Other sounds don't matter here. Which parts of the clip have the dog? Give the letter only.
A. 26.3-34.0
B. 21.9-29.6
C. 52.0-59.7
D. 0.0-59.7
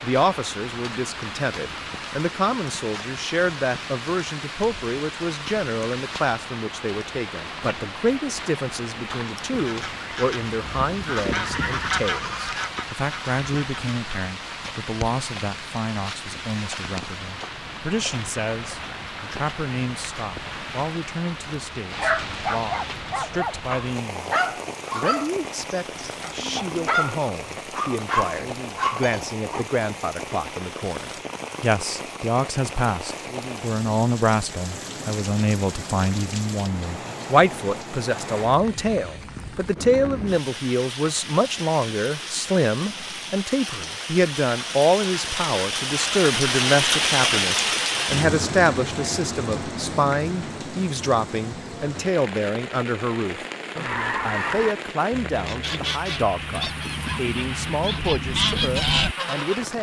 B.